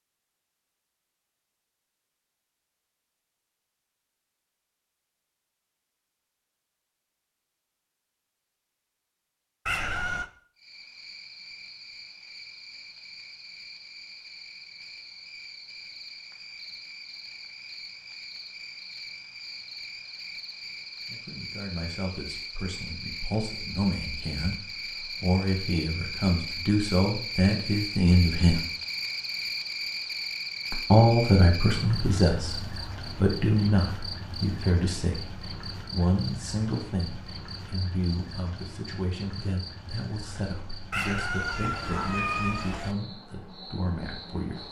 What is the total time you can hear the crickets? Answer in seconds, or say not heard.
34 s.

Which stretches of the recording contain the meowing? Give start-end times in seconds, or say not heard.
9.7-10.3, 40.9-43.0.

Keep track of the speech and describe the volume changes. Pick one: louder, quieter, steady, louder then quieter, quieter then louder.
louder then quieter.